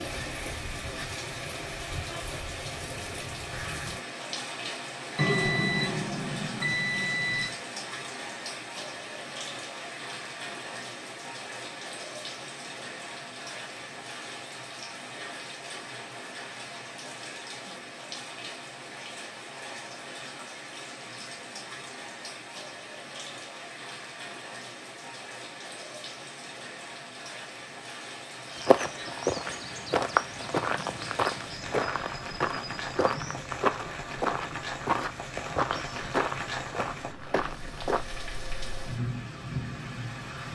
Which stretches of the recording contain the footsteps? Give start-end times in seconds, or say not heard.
28.5-38.0.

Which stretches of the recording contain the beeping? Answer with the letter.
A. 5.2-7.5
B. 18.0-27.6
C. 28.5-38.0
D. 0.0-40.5
A.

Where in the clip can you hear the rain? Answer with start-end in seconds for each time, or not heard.
0.0-40.5.